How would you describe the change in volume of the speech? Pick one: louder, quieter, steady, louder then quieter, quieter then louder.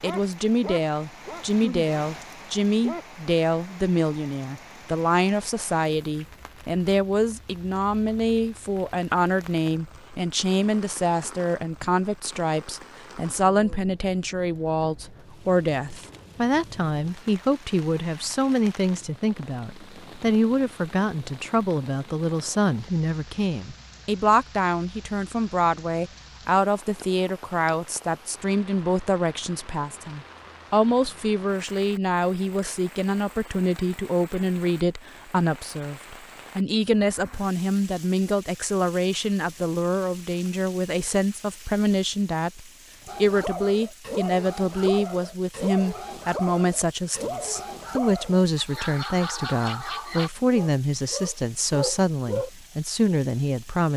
steady.